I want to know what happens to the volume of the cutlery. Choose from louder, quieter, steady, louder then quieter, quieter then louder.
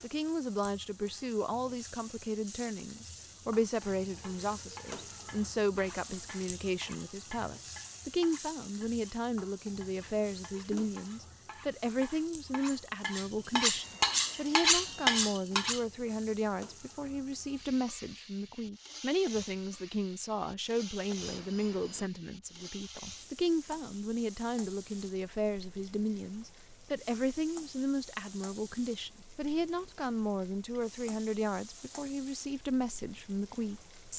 louder.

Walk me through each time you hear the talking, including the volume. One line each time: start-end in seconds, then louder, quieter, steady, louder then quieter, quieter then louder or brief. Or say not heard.
0.0-34.1 steady.